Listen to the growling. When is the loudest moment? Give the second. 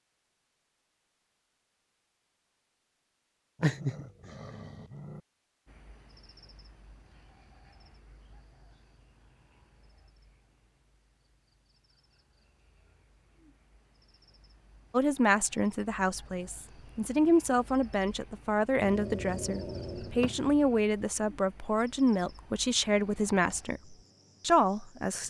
4 s.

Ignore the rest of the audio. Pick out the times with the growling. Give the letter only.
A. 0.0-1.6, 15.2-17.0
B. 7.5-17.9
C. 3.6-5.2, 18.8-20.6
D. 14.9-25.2
C.